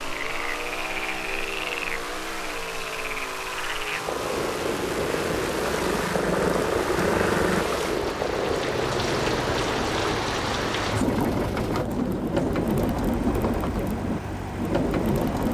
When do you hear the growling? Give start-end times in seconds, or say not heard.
5.6-7.7.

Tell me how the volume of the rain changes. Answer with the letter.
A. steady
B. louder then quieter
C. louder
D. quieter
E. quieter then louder
C.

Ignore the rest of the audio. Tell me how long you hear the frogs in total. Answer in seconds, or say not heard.
10 s.